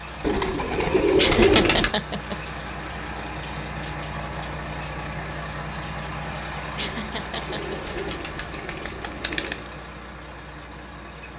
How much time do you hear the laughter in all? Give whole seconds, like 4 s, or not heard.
2 s.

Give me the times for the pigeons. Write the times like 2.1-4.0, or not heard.
0.2-1.9, 6.8-9.7.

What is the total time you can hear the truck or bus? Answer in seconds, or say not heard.
11 s.